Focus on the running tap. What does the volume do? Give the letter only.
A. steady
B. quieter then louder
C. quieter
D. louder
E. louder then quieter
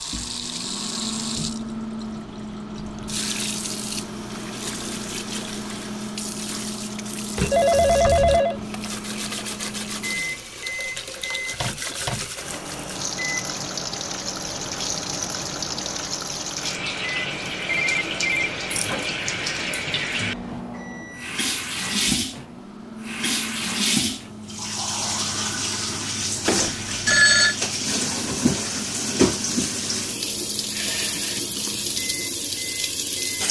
D.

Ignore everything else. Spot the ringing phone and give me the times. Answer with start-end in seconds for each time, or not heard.
7.5-8.6, 17.6-18.5, 26.4-27.6.